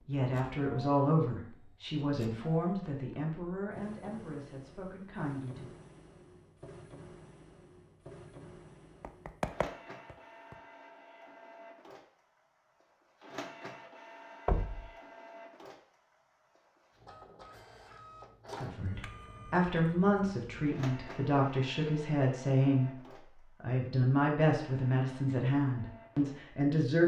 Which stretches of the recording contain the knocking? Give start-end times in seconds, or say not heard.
9.0-10.6, 14.4-14.9.